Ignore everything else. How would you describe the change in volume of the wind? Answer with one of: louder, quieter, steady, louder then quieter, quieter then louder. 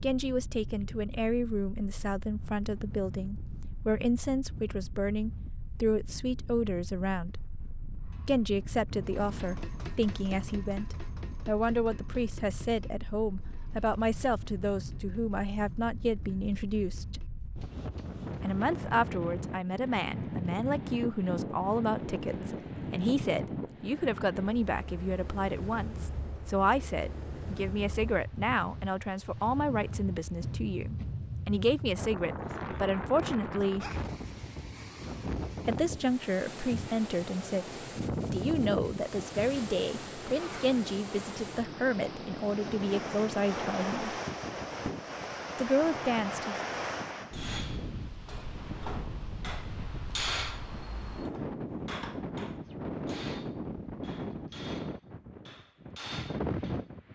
louder.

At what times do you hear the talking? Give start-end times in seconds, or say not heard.
0.0-7.5, 8.2-17.2, 18.4-33.9, 35.6-44.1, 45.5-46.5.